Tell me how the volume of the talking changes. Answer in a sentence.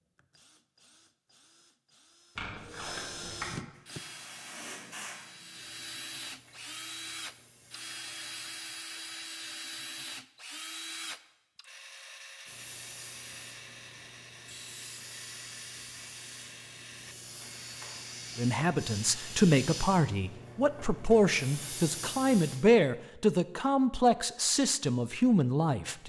The loudness of the talking stays about the same.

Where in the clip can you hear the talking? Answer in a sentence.
You can hear the talking from 18.4 to 26.0 s.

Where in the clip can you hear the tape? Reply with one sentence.
You can hear the tape from 2.4 to 3.5 s.